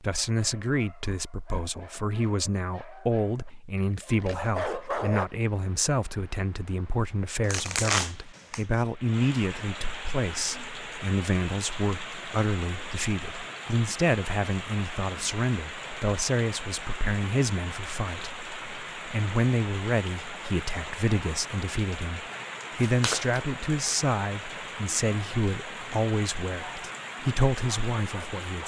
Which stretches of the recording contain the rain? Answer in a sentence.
The rain can be heard from 5.2 to 28.6 s.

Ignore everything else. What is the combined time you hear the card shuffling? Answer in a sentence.
You can hear the card shuffling for 2 seconds altogether.